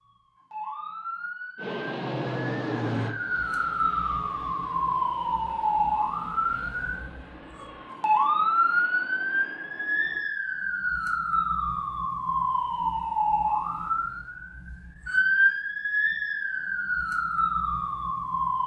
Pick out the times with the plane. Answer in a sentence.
You can hear the plane from 1.6 to 10.2 s.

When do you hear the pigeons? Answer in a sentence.
You can't hear the pigeons here.